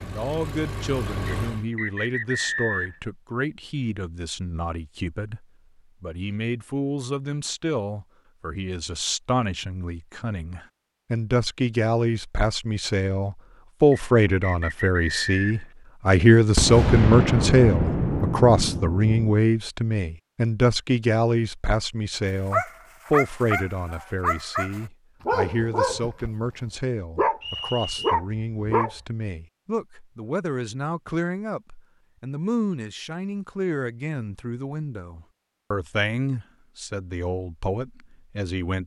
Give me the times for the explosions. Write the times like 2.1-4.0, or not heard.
16.6-19.4.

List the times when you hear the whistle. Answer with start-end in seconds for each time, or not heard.
1.2-3.0, 13.9-15.7, 27.4-28.1.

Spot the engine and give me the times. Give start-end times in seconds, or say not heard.
0.0-1.6.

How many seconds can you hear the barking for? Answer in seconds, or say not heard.
7 s.